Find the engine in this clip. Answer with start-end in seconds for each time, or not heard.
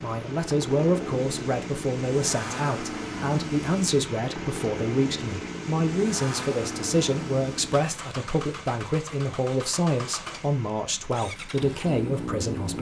0.0-12.7.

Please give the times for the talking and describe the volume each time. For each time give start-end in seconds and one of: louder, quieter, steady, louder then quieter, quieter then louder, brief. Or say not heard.
0.0-12.7 steady.